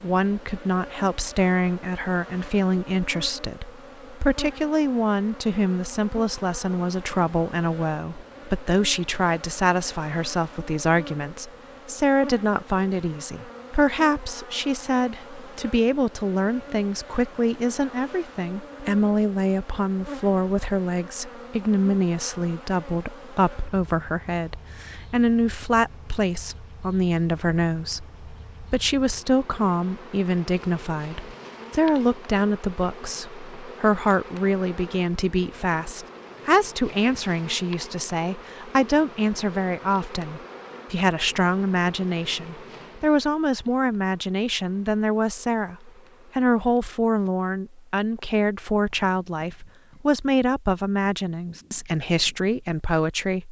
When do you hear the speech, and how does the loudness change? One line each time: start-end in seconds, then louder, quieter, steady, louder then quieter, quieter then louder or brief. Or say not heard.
0.0-53.4 steady.